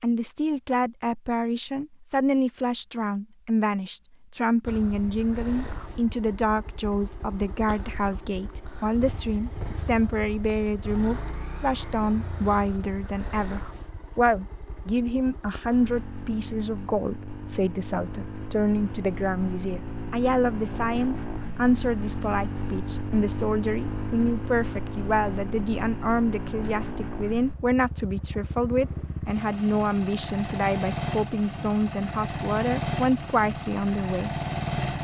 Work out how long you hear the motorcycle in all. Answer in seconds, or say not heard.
30 s.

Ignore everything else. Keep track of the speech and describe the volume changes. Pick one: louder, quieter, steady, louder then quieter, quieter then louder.
steady.